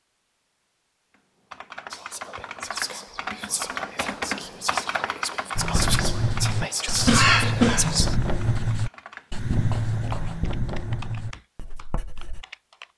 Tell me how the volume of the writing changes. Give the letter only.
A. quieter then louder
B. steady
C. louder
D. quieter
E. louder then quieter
D.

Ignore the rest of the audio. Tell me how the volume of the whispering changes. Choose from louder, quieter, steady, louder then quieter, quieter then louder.
louder.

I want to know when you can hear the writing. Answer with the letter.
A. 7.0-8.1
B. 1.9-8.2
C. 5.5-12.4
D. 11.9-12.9
C.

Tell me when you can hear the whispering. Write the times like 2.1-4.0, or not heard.
1.9-8.2.